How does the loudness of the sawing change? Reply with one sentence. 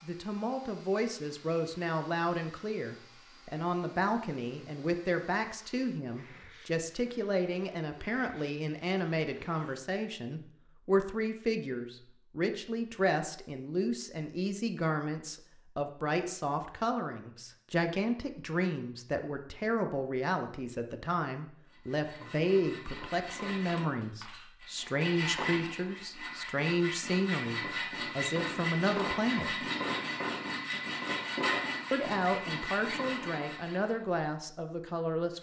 The volume of the sawing goes up.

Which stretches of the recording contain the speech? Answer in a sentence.
The speech can be heard from 0.0 to 29.6 s and from 31.9 to 35.3 s.